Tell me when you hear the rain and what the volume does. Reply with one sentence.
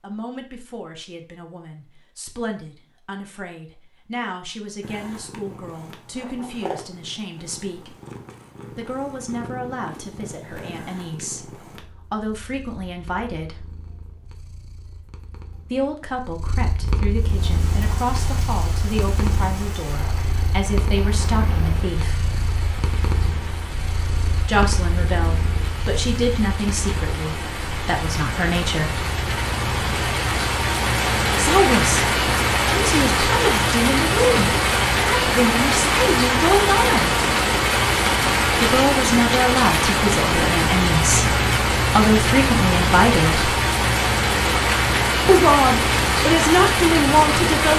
The rain can be heard from 17.1 to 47.7 s, getting louder.